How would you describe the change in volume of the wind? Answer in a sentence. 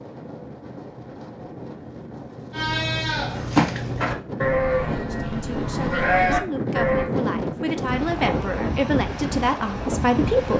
The volume of the wind goes up.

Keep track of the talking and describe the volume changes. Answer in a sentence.
The loudness of the talking goes up.